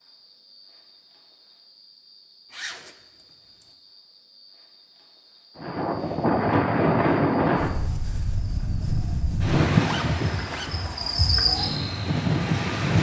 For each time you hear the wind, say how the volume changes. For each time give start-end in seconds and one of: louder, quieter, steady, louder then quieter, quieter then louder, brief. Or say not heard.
5.5-12.9 quieter.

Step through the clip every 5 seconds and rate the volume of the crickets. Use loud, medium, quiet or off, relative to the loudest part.
quiet, quiet, loud.